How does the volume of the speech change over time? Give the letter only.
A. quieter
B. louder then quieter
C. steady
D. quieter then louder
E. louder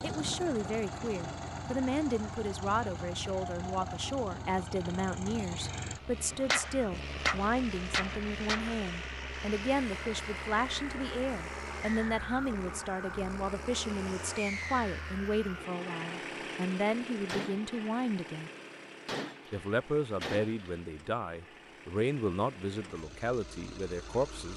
C.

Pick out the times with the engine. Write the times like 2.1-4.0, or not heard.
0.0-24.5.